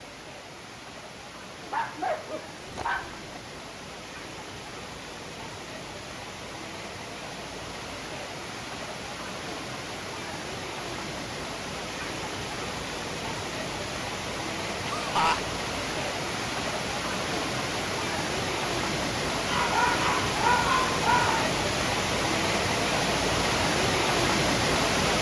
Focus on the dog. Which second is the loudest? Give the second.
21 s.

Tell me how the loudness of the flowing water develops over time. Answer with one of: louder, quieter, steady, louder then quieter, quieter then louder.
louder.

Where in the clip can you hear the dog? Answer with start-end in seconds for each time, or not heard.
1.7-3.2, 19.4-21.5.